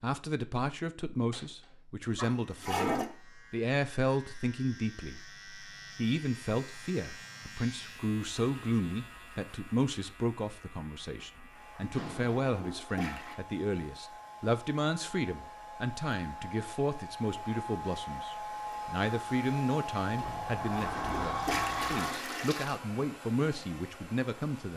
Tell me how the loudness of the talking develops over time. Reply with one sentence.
The volume of the talking stays about the same.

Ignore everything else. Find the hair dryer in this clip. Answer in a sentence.
The hair dryer can be heard from 11.4 to 24.7 s.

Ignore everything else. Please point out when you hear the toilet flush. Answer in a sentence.
The toilet flush can be heard from 2.1 to 3.1 s, from 11.8 to 13.3 s and from 20.2 to 22.8 s.